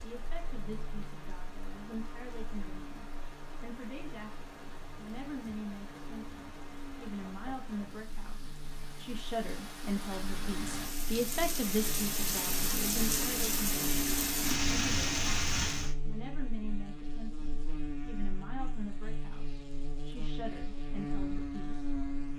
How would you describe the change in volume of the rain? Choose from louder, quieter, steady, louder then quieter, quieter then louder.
louder.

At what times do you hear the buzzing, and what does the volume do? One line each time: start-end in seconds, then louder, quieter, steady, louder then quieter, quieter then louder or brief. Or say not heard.
0.0-22.3 louder.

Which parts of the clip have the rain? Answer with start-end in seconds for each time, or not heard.
0.0-15.9.